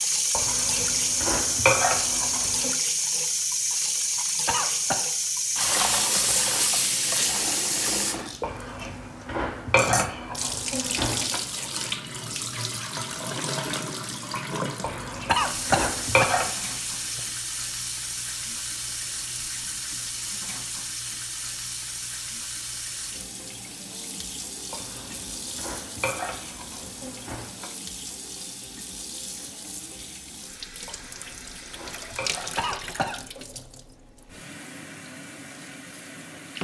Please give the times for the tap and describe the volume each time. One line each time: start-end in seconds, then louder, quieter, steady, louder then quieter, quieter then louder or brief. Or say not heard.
0.0-36.5 quieter.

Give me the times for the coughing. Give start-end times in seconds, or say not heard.
4.5-5.0, 15.2-17.2, 32.5-33.1.